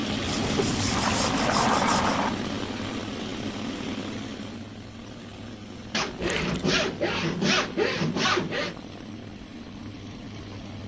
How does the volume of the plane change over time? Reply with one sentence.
The loudness of the plane goes down.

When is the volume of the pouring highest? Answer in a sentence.
The volume of the pouring peaks at 2 seconds.